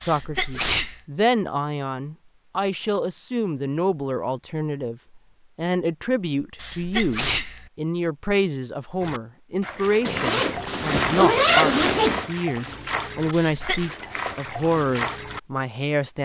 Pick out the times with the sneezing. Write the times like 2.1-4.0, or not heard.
0.0-1.0, 6.6-7.7, 13.3-13.9.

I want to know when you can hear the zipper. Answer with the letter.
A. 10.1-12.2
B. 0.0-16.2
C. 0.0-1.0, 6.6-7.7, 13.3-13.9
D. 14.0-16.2
A.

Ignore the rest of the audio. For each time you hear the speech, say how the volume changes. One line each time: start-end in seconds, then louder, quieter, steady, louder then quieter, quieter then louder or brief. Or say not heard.
0.0-16.2 steady.